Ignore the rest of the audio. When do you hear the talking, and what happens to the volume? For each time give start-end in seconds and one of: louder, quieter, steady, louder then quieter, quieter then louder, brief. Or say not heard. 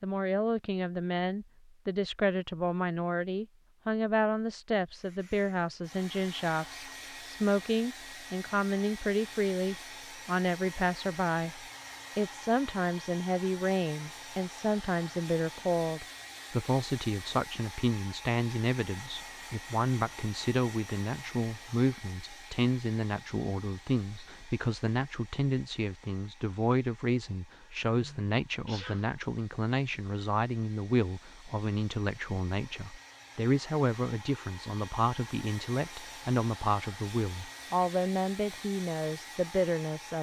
0.0-40.1 steady.